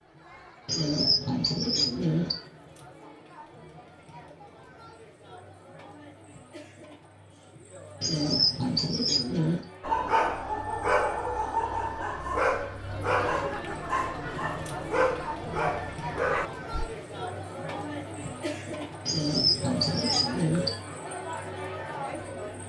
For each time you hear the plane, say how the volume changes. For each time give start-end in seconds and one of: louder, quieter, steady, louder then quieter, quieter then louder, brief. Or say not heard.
not heard.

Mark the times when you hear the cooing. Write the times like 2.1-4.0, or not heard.
0.7-2.4, 8.0-9.6, 19.1-20.7.